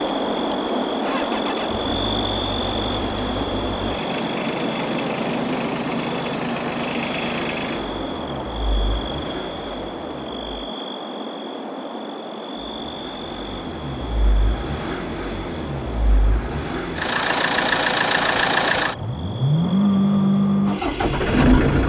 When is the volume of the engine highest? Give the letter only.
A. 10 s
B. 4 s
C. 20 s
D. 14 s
C.